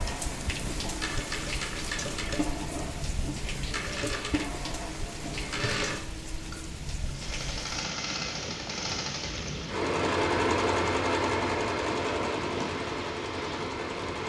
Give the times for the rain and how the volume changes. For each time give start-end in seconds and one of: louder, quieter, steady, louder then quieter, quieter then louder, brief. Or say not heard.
0.0-14.2 steady.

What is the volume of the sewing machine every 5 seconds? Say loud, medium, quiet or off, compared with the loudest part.
medium, medium, loud.